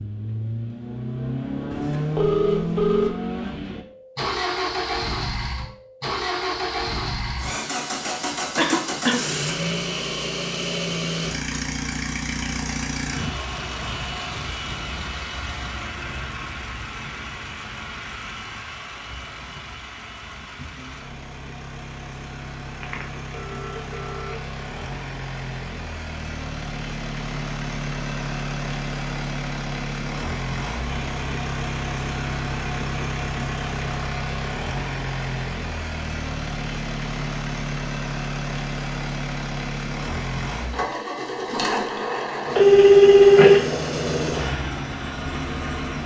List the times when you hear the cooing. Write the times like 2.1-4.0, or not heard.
not heard.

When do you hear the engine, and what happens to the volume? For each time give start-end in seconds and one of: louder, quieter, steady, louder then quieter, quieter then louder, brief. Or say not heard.
0.0-46.0 quieter then louder.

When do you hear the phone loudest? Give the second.
43 s.